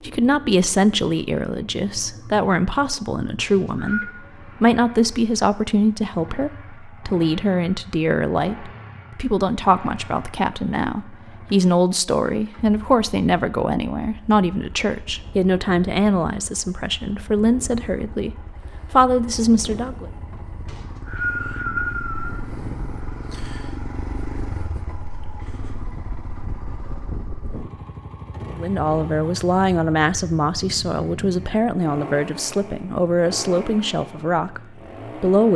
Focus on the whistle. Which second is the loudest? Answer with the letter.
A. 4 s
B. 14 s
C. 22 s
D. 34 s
C.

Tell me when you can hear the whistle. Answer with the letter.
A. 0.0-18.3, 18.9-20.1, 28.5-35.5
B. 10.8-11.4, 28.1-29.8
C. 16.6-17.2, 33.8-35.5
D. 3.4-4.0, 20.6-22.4
D.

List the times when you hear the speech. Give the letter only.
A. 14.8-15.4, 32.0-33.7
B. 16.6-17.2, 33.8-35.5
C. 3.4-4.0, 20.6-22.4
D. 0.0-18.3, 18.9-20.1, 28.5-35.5
D.